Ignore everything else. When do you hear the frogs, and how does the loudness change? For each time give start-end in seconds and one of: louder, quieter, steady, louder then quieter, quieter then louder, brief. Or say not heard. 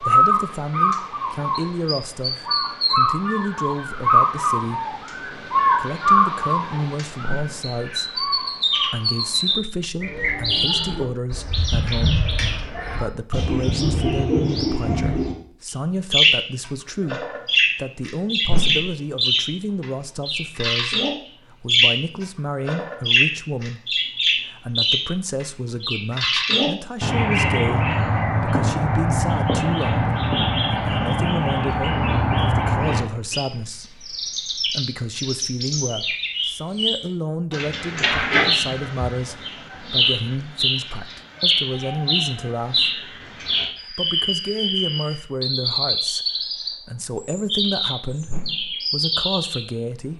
not heard.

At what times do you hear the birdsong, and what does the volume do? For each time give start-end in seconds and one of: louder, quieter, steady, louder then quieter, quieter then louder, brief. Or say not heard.
0.0-50.1 steady.